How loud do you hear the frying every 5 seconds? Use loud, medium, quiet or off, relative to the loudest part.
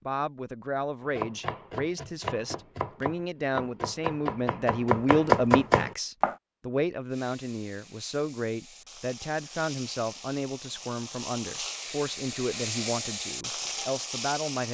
off, medium, loud.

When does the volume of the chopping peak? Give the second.
5 s.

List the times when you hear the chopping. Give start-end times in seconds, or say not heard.
1.1-6.3.